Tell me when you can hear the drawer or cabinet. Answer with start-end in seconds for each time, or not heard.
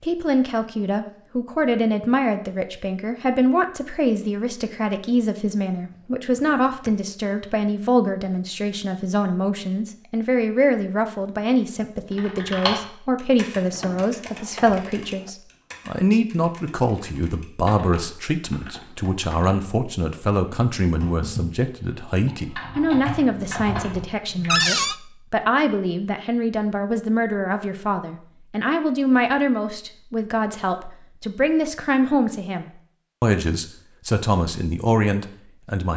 6.2-7.1, 13.7-15.3, 24.4-24.9.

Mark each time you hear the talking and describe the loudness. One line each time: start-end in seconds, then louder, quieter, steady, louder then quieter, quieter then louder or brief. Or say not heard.
0.0-35.9 steady.